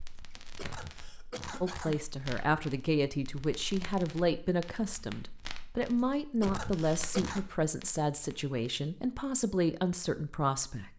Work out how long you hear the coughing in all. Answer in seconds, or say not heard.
3 s.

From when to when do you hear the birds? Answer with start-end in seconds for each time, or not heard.
not heard.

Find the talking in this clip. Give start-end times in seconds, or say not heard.
1.6-10.9.